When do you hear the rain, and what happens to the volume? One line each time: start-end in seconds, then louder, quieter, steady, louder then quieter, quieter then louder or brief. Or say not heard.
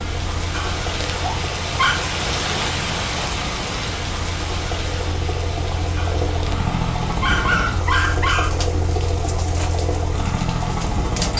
0.0-11.3 quieter.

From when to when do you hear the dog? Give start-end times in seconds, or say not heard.
0.5-2.0, 6.0-8.6.